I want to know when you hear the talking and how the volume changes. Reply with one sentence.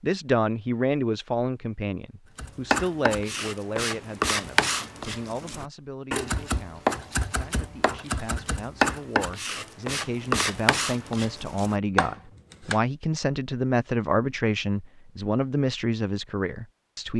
The talking can be heard from 0.0 to 17.1 s, getting quieter then louder.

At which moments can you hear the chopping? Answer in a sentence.
You can hear the chopping from 2.4 to 12.8 s.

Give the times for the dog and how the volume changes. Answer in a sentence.
You can't hear the dog here.